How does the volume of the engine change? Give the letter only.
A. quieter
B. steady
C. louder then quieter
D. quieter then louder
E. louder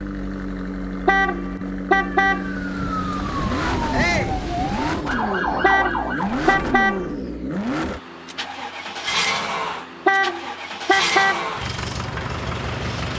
B.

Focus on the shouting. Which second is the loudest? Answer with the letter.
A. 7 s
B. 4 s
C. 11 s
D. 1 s
B.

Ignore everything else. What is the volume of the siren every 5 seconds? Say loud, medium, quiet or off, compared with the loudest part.
loud, loud, off.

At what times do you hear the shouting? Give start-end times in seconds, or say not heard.
3.9-4.3, 9.5-10.0.